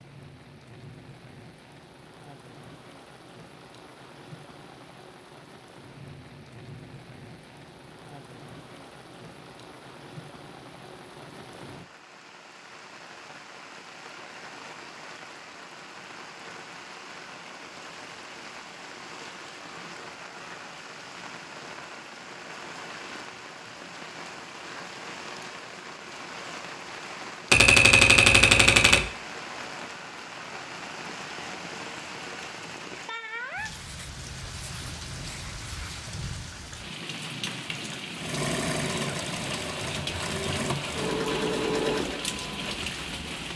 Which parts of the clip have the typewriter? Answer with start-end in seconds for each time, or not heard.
27.5-29.1.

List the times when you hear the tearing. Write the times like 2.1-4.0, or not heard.
not heard.